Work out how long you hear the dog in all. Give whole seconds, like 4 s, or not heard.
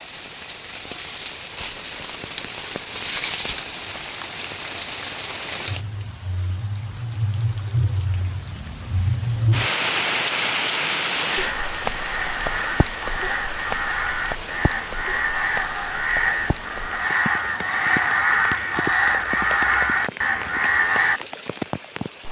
not heard.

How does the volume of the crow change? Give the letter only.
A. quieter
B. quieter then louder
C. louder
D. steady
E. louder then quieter
C.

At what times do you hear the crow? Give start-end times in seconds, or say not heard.
11.3-21.2.